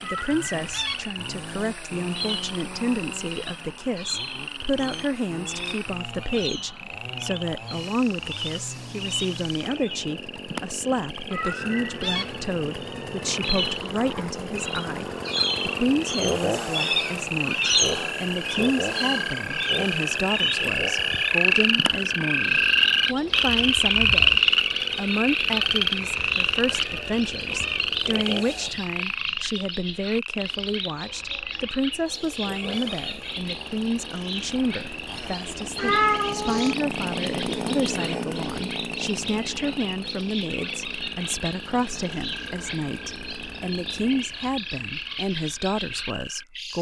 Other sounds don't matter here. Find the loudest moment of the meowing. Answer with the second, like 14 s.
36 s.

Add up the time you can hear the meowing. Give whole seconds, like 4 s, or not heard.
6 s.